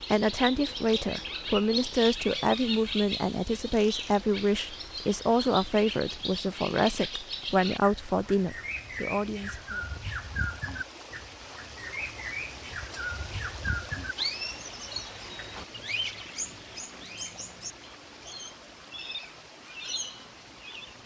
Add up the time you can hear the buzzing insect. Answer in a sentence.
You can't hear the buzzing insect here.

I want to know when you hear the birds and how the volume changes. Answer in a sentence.
You can hear the birds from 0.0 to 21.0 s, getting quieter.